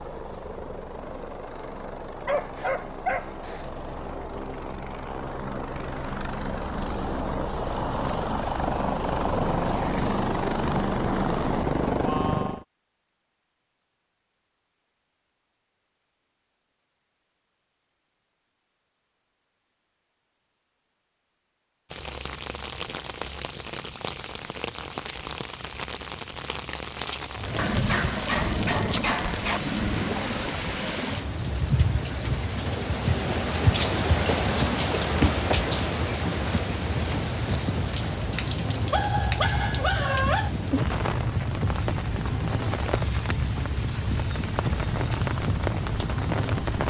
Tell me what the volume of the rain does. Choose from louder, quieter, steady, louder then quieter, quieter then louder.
louder then quieter.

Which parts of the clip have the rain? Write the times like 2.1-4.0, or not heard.
21.9-46.8.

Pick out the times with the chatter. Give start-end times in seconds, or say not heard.
not heard.